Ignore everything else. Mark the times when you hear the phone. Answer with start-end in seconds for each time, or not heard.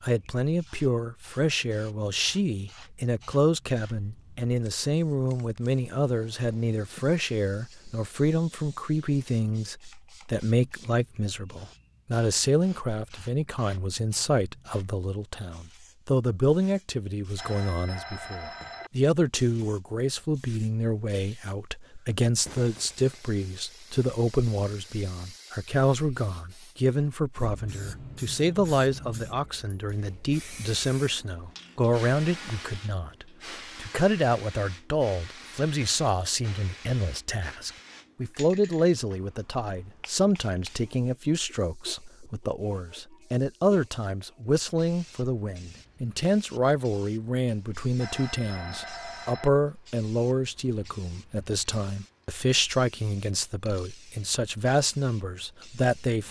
17.4-18.9, 48.0-49.5.